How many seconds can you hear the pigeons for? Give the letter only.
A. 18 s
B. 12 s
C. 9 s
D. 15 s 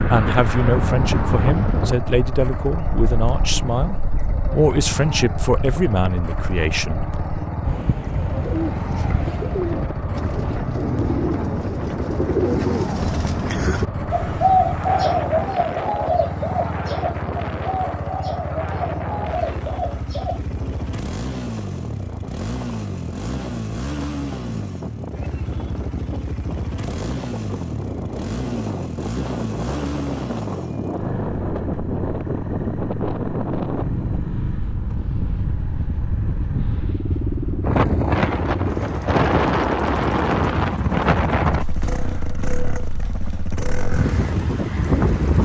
B.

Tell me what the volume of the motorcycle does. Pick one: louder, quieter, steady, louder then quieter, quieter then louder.
steady.